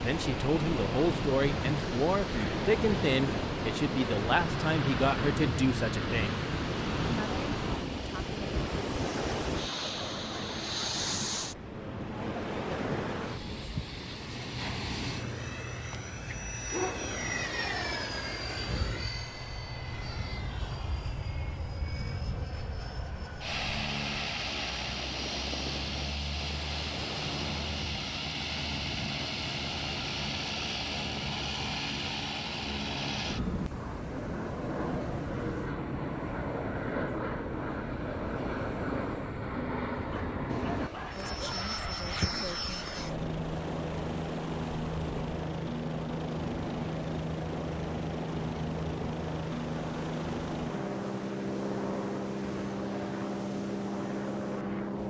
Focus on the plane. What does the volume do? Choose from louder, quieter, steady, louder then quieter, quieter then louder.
louder.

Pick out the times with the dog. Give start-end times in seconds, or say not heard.
15.9-17.1, 40.0-42.0.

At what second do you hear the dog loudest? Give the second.
17 s.